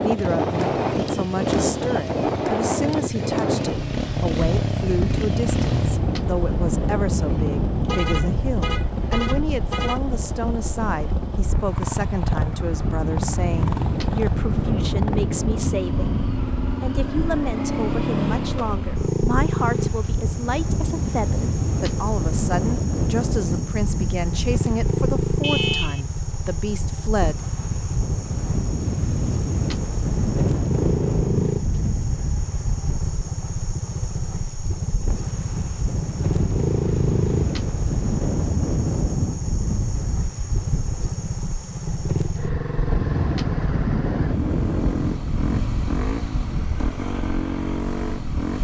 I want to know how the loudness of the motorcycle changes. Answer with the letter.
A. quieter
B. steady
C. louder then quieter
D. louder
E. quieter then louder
B.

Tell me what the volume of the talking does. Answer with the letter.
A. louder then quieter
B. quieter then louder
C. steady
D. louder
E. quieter
C.